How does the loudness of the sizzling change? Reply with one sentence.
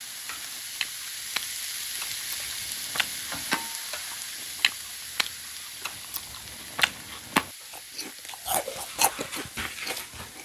The loudness of the sizzling goes down.